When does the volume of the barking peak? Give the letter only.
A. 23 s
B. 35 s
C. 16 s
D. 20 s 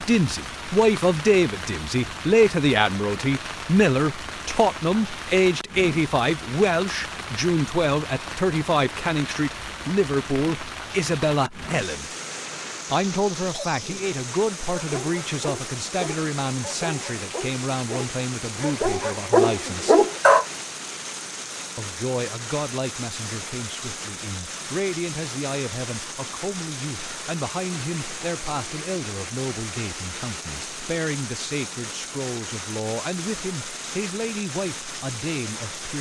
D.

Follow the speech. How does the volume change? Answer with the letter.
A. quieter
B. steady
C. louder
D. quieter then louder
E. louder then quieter
A.